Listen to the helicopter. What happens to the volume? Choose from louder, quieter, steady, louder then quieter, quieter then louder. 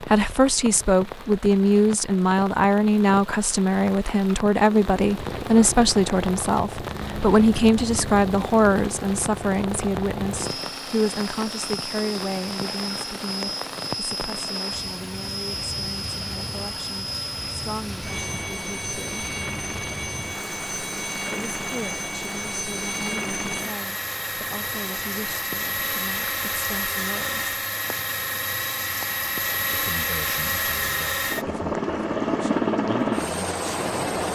louder.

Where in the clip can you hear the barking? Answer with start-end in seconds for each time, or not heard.
not heard.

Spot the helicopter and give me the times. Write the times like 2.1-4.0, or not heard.
5.0-34.3.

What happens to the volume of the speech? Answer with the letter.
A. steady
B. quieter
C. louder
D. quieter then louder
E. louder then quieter
B.